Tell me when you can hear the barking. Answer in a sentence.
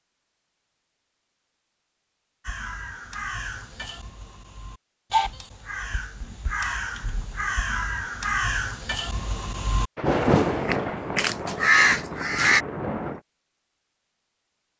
You can't hear the barking here.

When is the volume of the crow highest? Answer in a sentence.
The volume of the crow peaks at 12 seconds.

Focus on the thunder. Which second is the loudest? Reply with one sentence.
The volume of the thunder peaks at 10 seconds.